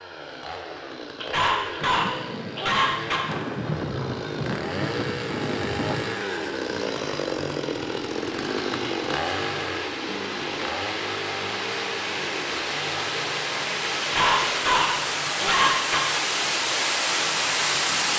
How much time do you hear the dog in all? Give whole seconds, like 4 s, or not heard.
4 s.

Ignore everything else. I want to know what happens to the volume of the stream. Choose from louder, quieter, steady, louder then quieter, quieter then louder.
louder.